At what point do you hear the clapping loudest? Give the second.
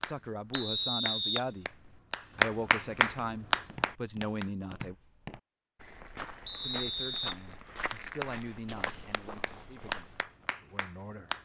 3 s.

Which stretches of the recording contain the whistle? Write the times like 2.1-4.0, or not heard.
0.5-1.9, 6.5-7.3.